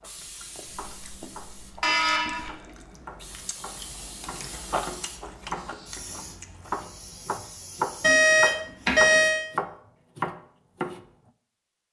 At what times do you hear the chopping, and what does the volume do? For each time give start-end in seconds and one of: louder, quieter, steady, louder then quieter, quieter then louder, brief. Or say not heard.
0.8-11.1 louder.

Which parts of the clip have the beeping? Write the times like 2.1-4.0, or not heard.
0.8-2.5, 8.0-9.4.